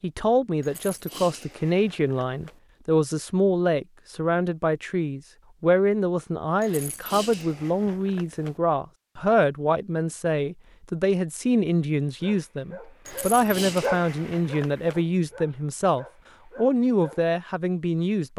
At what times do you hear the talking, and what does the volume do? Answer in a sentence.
You can hear the talking from 0.0 to 18.3 s, at a steady volume.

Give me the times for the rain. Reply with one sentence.
You can't hear the rain here.